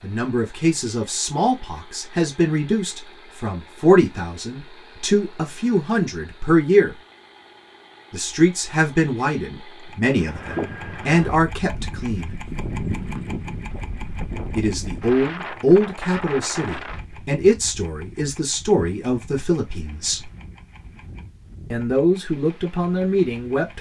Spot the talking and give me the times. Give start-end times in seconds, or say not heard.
0.0-7.0, 8.1-12.3, 14.6-20.3, 21.7-23.7.